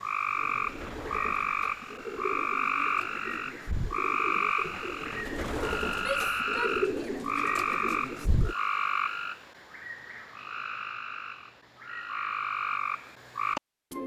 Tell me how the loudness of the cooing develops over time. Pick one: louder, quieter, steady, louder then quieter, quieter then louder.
louder.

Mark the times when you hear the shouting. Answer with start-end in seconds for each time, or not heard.
6.0-7.2.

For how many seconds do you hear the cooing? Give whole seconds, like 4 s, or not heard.
8 s.